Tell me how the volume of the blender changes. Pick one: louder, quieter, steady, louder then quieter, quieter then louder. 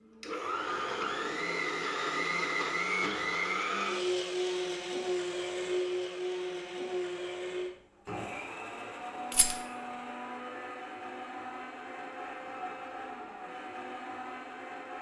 quieter.